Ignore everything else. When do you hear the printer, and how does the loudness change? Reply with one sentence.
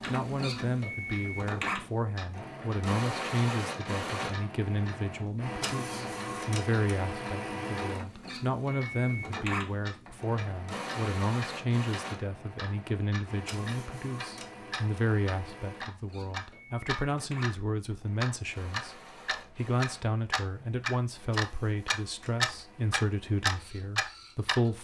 The printer can be heard from 0.0 to 24.7 s, getting quieter.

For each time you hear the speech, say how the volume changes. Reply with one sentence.
You can hear the speech from 0.1 to 24.7 s, at a steady volume.